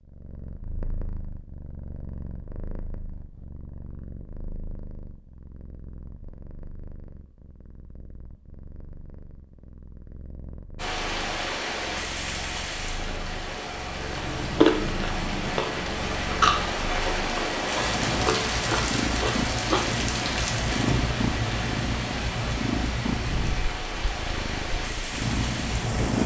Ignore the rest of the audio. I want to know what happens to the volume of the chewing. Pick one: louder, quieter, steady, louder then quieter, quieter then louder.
quieter.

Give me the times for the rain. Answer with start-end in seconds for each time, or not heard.
10.8-26.2.